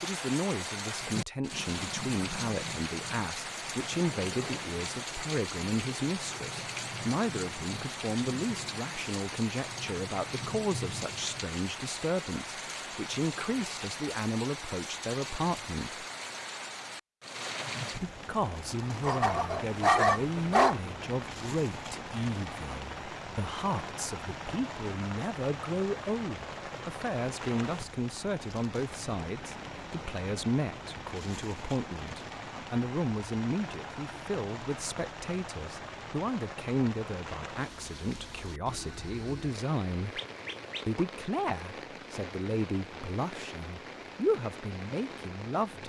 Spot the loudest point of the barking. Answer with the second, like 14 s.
20 s.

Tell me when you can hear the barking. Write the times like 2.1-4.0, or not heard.
19.0-20.8, 40.1-41.0.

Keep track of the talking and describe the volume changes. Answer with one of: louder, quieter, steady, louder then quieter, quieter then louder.
steady.